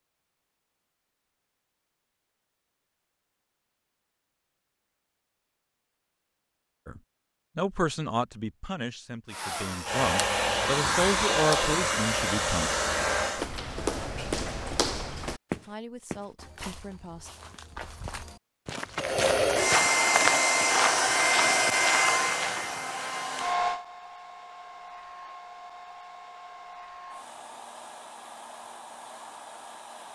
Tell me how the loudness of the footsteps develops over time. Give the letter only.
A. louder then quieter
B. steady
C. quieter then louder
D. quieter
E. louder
C.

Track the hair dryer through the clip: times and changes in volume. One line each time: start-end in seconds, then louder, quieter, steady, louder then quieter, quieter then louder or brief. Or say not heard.
9.3-13.5 steady
18.9-30.1 quieter.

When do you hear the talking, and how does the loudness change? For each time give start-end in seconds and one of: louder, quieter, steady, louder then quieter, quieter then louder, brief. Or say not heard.
6.8-12.7 quieter then louder
15.6-17.3 brief.